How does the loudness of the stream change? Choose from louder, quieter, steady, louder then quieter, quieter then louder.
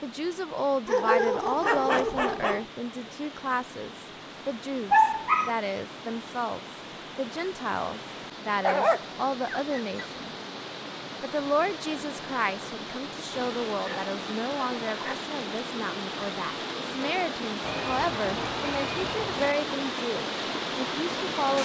louder.